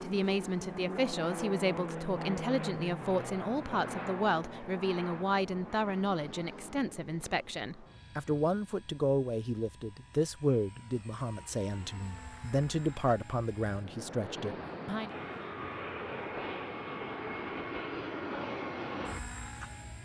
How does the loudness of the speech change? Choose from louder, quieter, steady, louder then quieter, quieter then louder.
steady.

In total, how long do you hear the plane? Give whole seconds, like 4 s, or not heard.
20 s.